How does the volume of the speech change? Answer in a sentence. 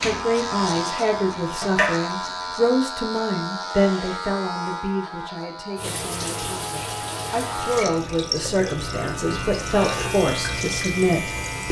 The loudness of the speech goes down, then up.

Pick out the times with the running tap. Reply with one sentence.
You can hear the running tap from 0.0 to 2.8 s and from 5.8 to 11.6 s.